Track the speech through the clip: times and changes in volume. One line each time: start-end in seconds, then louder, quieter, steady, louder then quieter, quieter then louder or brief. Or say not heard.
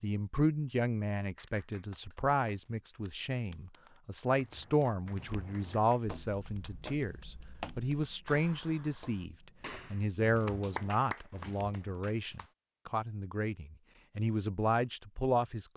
0.0-15.7 steady.